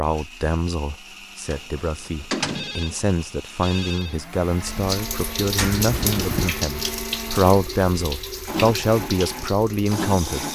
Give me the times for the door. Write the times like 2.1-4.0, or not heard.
1.5-2.8, 5.5-6.5.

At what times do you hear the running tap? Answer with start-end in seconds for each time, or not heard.
4.6-10.5.